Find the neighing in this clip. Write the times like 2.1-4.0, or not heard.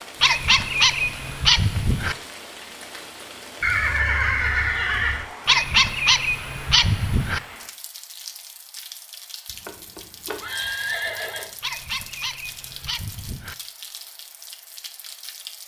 3.6-5.2, 9.5-11.5.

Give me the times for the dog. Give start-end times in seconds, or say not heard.
0.2-2.1, 5.5-7.4, 11.6-13.6.